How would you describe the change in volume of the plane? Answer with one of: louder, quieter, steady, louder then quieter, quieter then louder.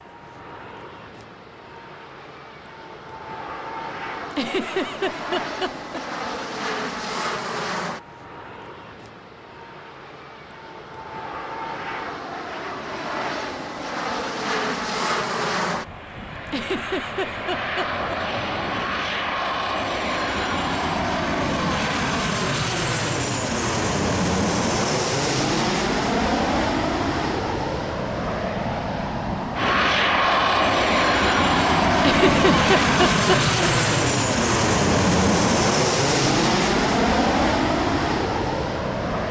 louder.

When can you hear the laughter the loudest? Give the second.
32 s.